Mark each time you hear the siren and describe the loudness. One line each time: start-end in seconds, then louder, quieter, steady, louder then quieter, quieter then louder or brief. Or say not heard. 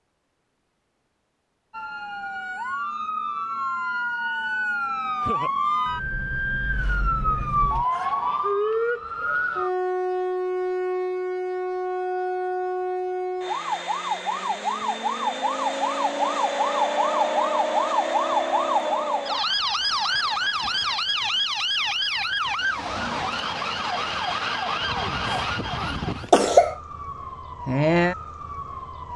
1.7-29.1 steady.